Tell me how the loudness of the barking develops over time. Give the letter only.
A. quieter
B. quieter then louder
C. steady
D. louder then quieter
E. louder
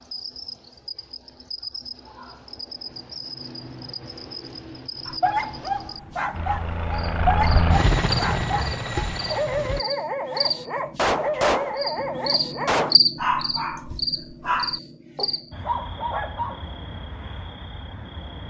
C.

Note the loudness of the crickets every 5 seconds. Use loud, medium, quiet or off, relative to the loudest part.
medium, medium, loud, medium.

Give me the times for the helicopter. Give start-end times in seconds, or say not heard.
6.3-9.8.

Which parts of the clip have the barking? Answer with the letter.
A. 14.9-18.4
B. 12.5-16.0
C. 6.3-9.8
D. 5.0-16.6
D.